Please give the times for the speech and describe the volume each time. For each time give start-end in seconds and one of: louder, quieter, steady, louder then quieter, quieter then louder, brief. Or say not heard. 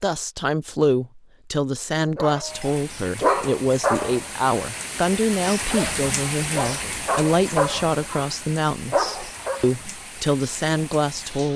0.0-11.5 steady.